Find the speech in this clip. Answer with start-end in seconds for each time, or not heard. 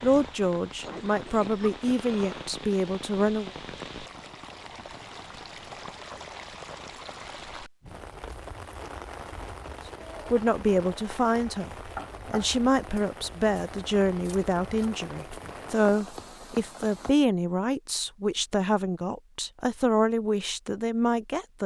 0.0-3.5, 10.3-21.6.